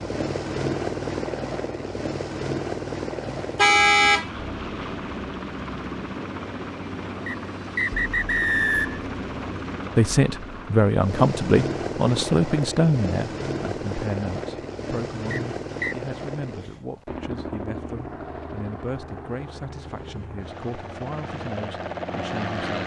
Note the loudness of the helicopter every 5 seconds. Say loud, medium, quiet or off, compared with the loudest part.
loud, loud, loud, medium, loud.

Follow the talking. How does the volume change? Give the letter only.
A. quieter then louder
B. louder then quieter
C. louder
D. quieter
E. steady
D.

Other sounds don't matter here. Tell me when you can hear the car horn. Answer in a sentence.
The car horn can be heard from 3.4 to 4.3 s.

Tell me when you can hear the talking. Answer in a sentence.
You can hear the talking from 9.9 to 22.8 s.